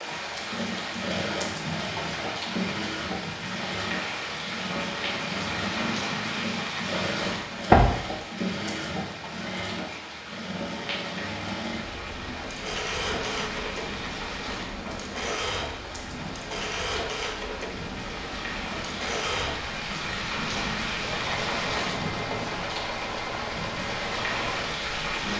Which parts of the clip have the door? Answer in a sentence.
The door can be heard from 7.2 to 7.9 s.